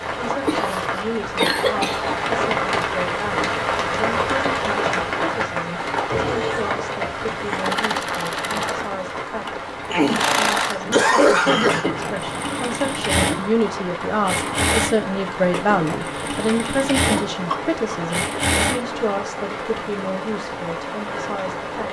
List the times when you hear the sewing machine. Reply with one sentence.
You can hear the sewing machine from 5.9 to 18.9 s.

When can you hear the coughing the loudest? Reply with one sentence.
The volume of the coughing peaks at 11 seconds.